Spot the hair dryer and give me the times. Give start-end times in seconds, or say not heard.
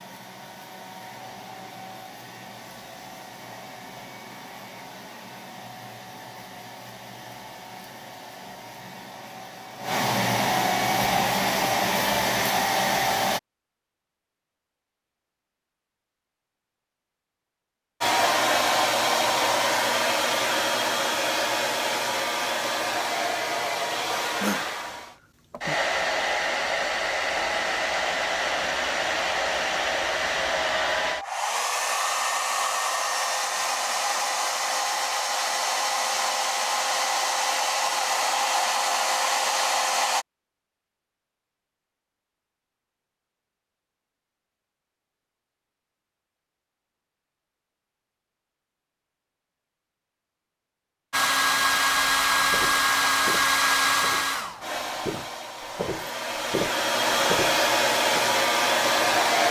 0.0-13.4, 18.0-40.2, 51.1-59.4.